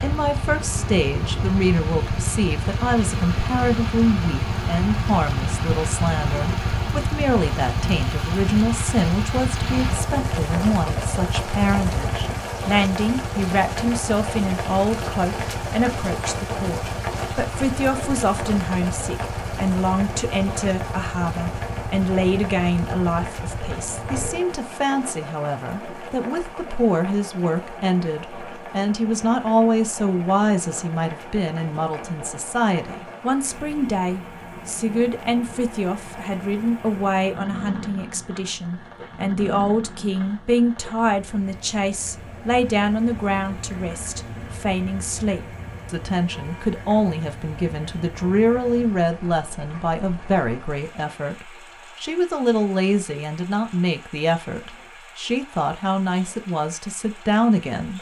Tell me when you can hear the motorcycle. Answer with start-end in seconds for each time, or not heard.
0.0-24.4.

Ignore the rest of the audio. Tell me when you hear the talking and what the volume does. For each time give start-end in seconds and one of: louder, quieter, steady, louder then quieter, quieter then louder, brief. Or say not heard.
0.0-57.9 steady.